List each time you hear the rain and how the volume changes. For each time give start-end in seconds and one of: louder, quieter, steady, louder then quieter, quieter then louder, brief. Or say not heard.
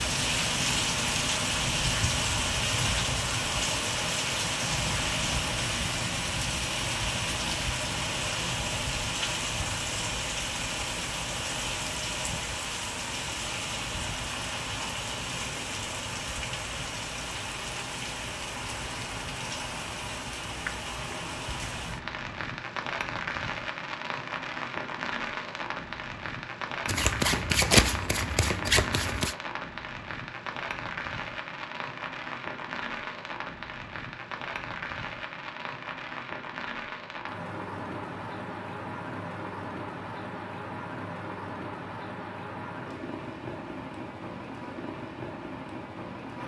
0.0-46.4 quieter.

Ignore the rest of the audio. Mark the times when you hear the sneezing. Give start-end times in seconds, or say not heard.
not heard.